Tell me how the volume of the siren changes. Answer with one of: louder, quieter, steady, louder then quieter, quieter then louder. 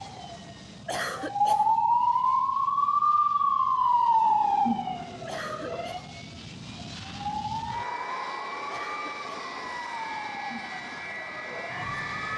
quieter.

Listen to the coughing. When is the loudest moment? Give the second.
1 s.